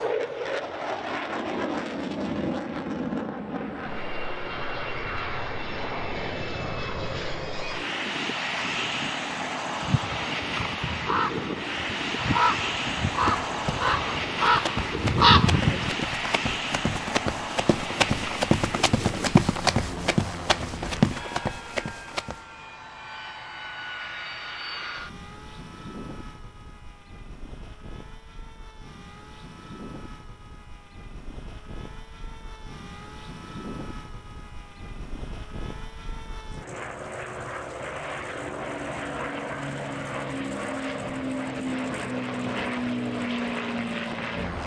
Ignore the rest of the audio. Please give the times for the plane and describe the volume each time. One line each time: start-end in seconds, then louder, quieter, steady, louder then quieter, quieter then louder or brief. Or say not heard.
0.0-44.6 quieter then louder.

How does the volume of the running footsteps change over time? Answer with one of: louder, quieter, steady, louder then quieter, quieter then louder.
louder.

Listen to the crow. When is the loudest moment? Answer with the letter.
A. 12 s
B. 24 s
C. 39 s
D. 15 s
D.